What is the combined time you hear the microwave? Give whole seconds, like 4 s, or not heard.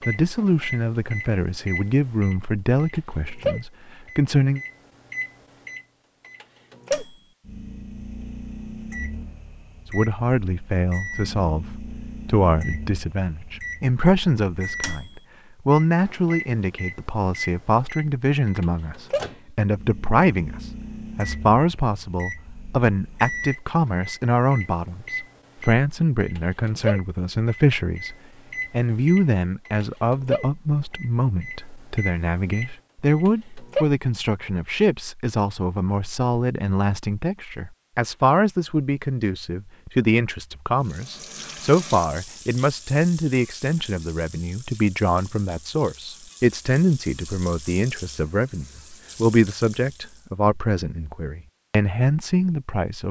34 s.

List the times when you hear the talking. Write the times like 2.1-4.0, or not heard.
0.1-4.6, 9.9-53.0.